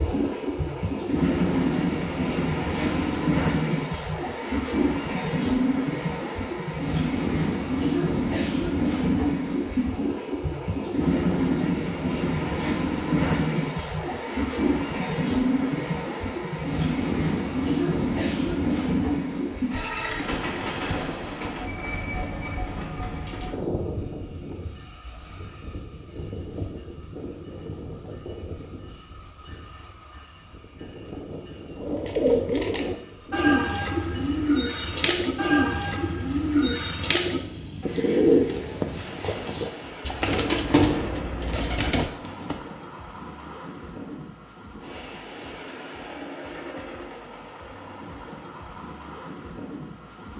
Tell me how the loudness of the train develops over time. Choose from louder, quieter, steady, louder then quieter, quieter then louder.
quieter.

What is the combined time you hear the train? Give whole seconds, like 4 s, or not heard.
50 s.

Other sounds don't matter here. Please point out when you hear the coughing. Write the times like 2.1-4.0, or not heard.
not heard.